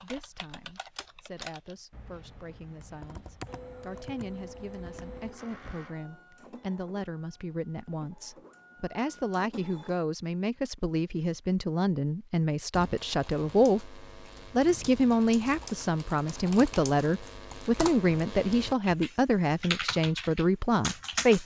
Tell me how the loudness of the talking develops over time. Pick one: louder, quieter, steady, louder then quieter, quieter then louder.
louder.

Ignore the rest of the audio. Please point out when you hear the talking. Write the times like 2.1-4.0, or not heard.
0.0-21.4.